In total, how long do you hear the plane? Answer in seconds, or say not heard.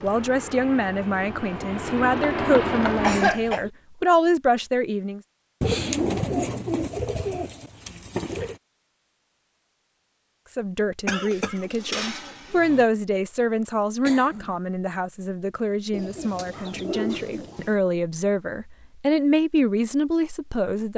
3 s.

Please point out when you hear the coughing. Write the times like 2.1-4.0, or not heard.
3.0-3.6, 11.1-11.7, 14.1-14.6.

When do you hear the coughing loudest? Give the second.
3 s.